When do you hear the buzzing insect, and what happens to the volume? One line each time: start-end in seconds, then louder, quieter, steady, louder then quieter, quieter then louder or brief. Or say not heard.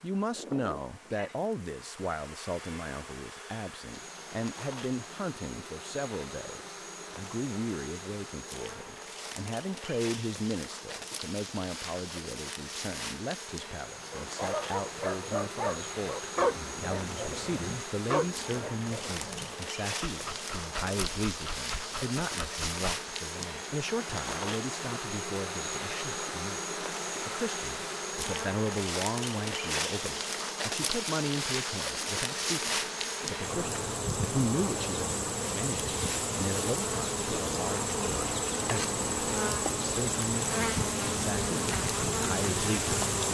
0.0-43.2 louder.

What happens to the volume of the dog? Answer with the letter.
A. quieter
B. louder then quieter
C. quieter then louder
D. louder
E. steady
A.